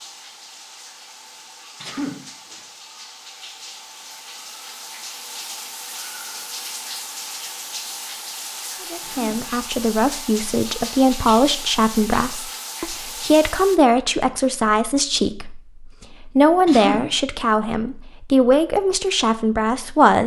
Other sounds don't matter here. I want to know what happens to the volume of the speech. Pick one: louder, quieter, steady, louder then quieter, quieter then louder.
steady.